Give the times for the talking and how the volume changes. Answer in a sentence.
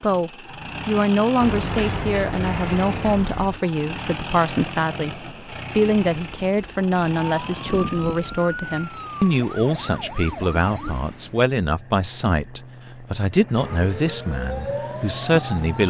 The talking can be heard from 0.0 to 15.8 s, at a steady volume.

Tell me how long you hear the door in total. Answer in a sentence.
The door can be heard for 2 seconds in total.